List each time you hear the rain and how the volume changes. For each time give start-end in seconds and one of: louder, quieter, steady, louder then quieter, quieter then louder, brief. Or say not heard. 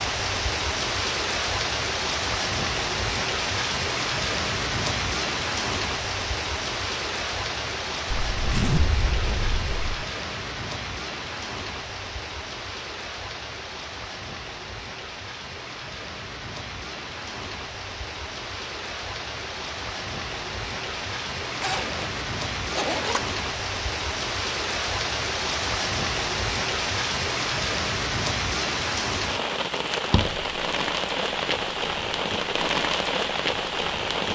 0.0-34.3 quieter then louder.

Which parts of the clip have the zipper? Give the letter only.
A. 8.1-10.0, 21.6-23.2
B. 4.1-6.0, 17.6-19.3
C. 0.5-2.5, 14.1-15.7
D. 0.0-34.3
A.